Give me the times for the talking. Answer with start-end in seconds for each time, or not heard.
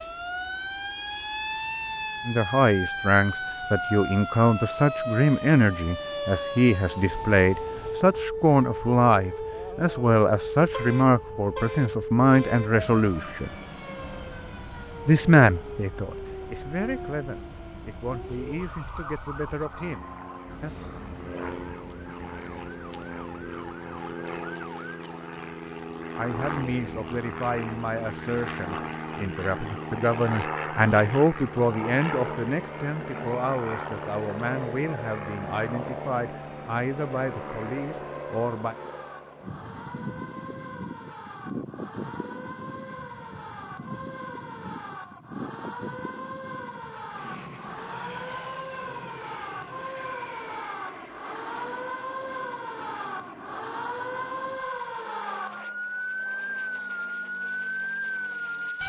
2.2-13.6, 15.1-20.8, 26.1-38.8.